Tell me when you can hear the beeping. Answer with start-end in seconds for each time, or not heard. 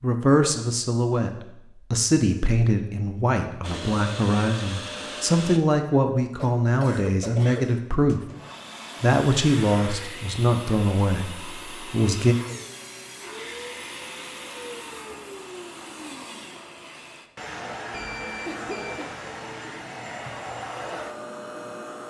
17.9-19.1.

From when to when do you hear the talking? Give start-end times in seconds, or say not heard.
0.0-8.2, 9.0-12.3.